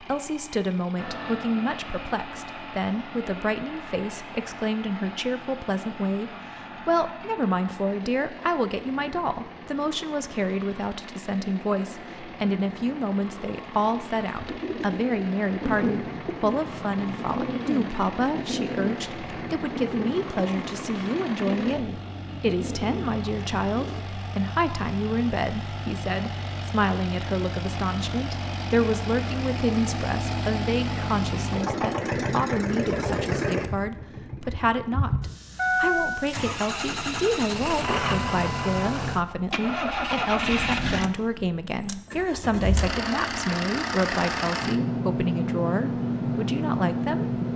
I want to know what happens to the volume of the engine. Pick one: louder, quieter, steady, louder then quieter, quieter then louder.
louder.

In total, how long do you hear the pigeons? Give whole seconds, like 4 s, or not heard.
10 s.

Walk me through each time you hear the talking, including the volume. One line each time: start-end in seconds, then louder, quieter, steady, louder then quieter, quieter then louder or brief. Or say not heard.
0.0-47.4 steady.